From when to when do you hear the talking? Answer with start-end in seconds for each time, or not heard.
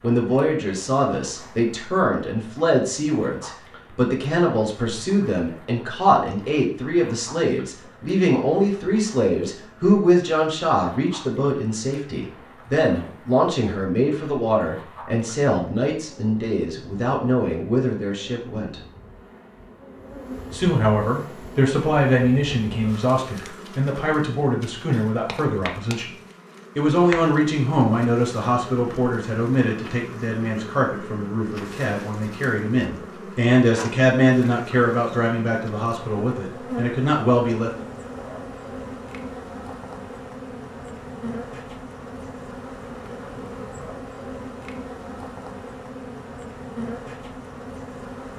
0.0-18.8, 20.5-26.1, 26.8-37.9.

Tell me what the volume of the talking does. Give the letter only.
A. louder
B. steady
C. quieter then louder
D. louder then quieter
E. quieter
B.